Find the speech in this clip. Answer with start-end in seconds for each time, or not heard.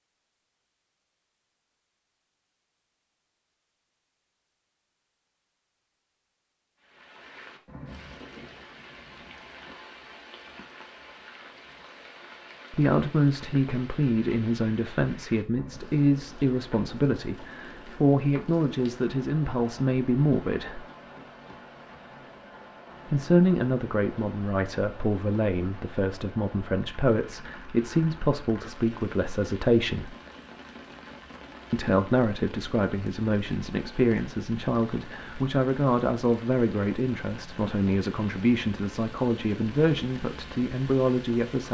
12.7-20.9, 23.1-30.1, 31.7-41.6.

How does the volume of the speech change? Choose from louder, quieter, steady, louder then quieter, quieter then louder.
steady.